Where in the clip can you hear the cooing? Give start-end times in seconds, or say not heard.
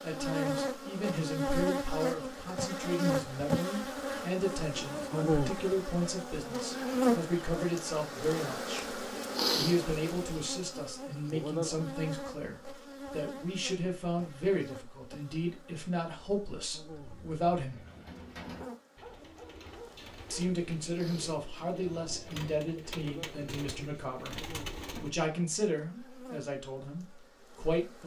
16.9-25.1.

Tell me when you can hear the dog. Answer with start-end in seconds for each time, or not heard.
18.6-20.6.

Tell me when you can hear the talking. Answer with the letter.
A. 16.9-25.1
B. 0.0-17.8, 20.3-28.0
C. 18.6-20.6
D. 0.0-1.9
B.